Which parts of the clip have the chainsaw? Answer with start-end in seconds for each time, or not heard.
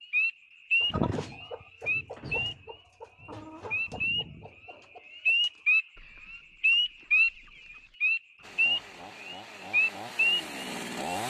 8.4-11.2.